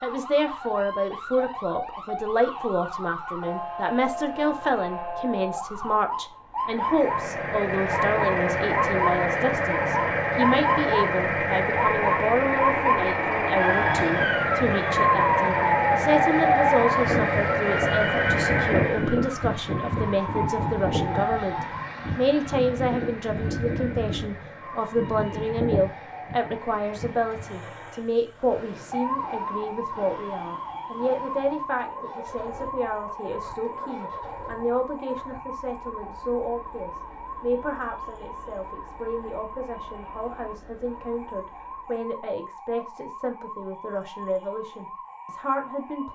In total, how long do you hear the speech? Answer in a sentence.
The speech can be heard for 46 seconds in total.